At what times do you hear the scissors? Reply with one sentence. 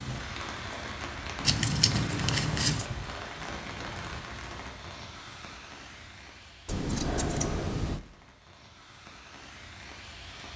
The scissors can be heard from 1.4 to 2.9 s and from 6.7 to 8.0 s.